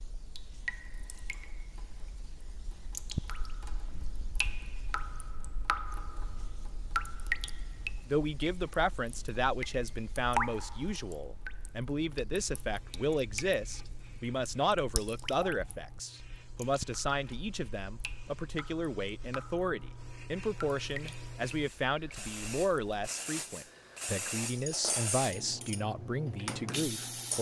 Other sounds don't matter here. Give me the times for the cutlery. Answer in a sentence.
You can hear the cutlery from 24.4 to 27.3 s.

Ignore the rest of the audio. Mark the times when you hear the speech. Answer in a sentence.
You can hear the speech from 8.1 to 27.3 s.